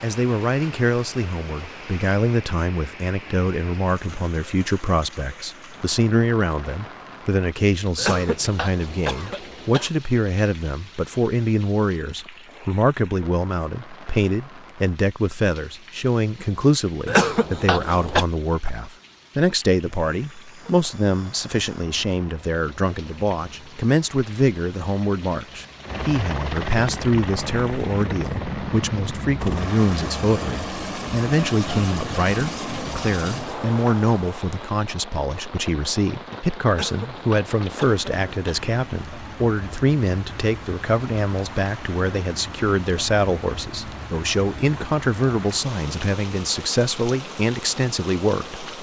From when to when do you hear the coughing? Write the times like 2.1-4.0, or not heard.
8.0-9.9, 17.1-18.2, 36.7-38.6.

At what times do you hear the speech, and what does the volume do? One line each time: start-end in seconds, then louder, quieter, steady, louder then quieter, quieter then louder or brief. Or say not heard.
0.0-48.6 steady.